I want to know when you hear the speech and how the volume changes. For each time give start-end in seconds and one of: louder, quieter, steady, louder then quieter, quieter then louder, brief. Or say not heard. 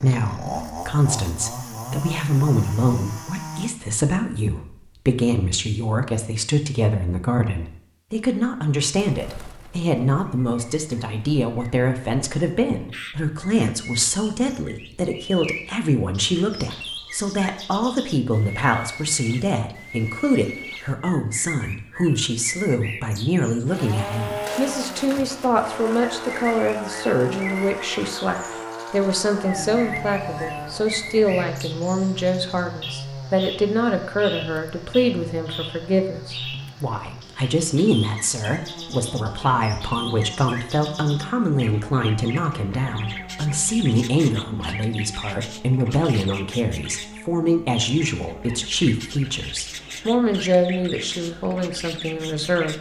0.0-52.7 steady.